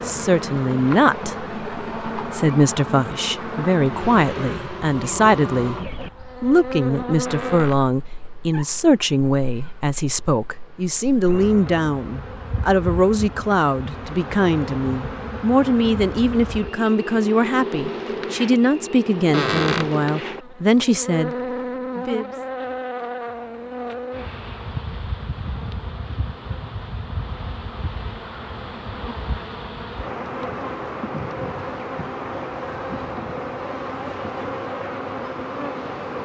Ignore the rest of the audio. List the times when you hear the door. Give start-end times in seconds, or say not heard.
7.2-8.8, 19.3-19.9.